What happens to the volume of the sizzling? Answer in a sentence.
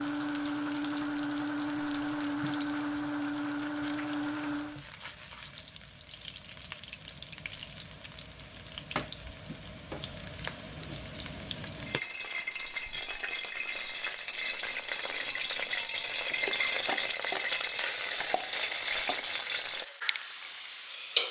The volume of the sizzling goes up.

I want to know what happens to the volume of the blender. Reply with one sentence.
The loudness of the blender stays about the same.